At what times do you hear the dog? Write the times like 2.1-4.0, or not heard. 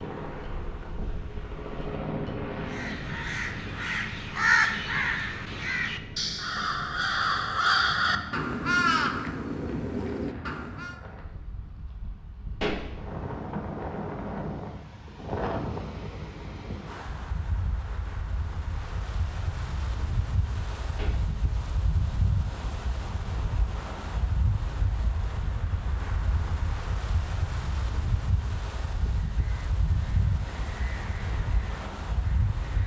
not heard.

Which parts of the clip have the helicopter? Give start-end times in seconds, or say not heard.
0.0-3.1.